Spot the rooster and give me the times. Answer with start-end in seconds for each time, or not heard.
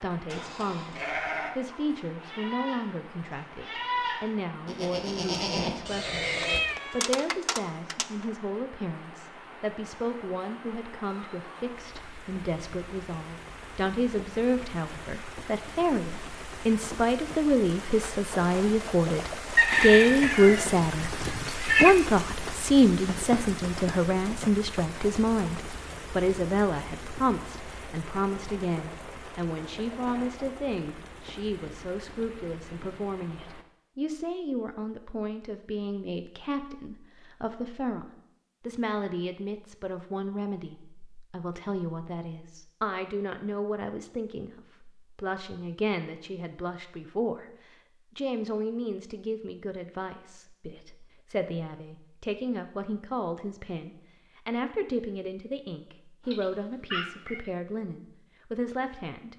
19.6-21.4.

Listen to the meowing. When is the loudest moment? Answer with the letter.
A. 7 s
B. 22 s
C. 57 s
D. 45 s
B.